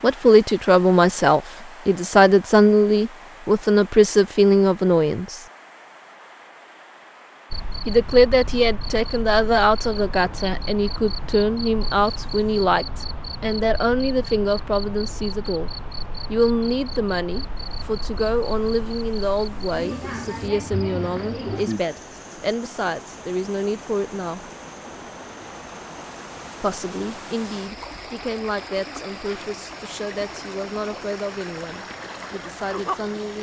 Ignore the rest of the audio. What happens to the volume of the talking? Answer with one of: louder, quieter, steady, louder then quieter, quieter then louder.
quieter.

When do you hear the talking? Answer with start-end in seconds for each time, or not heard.
0.0-5.5, 7.8-15.7, 16.3-24.4, 26.6-33.3.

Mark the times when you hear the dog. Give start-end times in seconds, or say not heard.
not heard.